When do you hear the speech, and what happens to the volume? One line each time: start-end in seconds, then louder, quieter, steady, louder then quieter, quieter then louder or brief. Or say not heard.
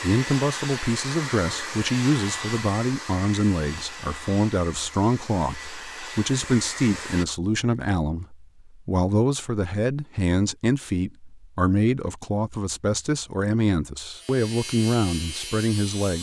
0.0-16.1 steady.